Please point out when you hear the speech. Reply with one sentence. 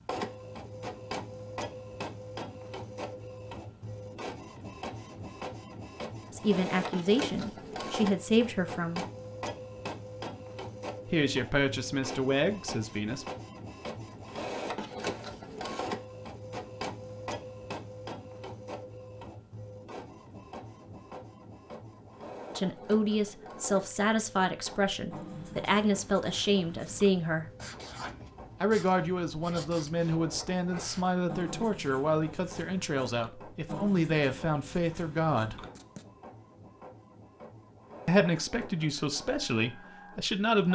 You can hear the speech from 6.3 to 9.1 s, from 11.1 to 13.2 s, from 22.6 to 27.4 s, from 28.6 to 35.6 s and from 38.0 to 40.7 s.